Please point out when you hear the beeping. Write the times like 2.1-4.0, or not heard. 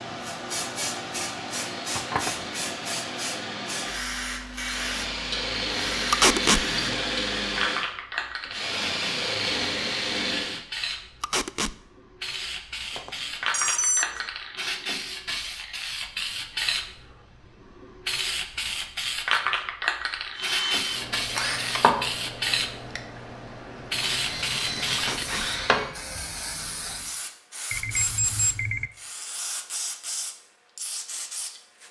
1.9-2.4, 12.9-14.2, 27.7-28.9.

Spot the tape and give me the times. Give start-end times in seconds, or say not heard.
6.1-6.6, 11.2-11.8, 24.9-25.5.